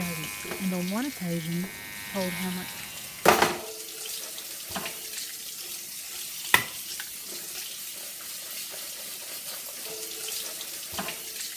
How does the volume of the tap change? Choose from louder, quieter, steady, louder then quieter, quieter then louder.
louder then quieter.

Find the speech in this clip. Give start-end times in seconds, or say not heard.
0.0-2.8.